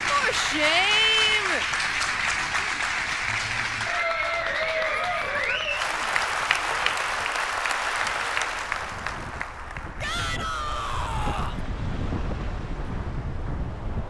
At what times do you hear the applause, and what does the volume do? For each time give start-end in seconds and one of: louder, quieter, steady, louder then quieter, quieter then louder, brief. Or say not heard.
0.0-14.0 quieter.